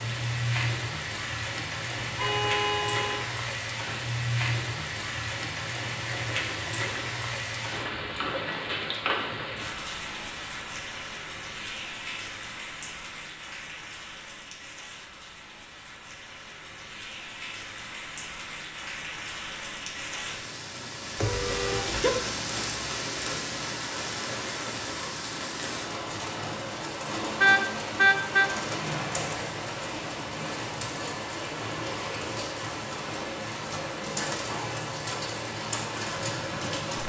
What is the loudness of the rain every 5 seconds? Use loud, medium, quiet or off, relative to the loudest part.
loud, loud, medium, medium, loud, loud, loud, loud.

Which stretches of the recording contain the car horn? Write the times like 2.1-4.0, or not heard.
2.0-3.2, 21.1-22.1, 27.4-28.4.